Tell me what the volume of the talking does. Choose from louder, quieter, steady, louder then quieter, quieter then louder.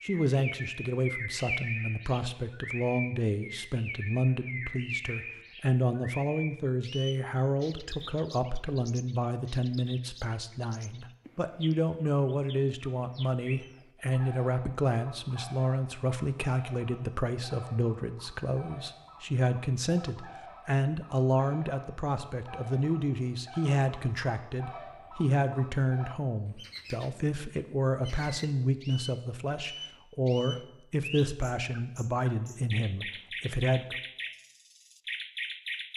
steady.